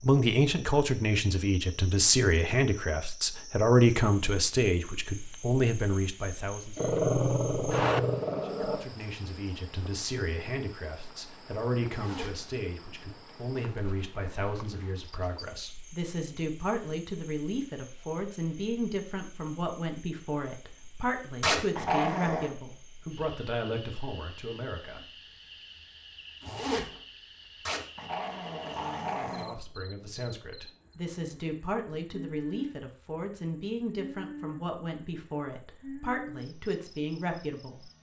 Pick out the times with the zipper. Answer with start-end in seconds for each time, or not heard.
11.8-12.4, 26.4-27.0.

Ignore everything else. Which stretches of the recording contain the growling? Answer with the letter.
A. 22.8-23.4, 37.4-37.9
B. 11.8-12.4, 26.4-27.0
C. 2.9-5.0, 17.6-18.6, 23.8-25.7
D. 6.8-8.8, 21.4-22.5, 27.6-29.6
D.